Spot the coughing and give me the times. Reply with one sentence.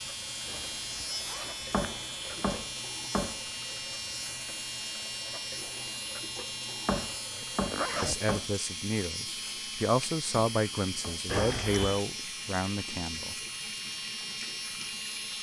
You can't hear the coughing here.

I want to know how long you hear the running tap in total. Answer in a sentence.
The running tap can be heard for 15 seconds in total.